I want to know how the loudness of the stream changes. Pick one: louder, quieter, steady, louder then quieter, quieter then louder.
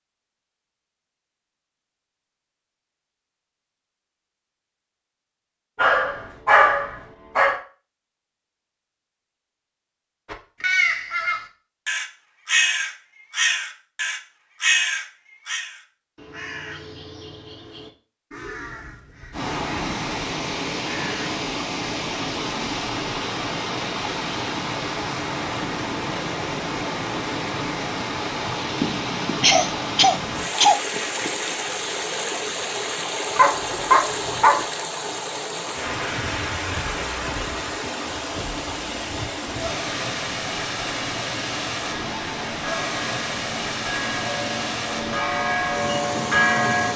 steady.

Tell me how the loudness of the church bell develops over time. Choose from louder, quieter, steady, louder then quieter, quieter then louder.
louder.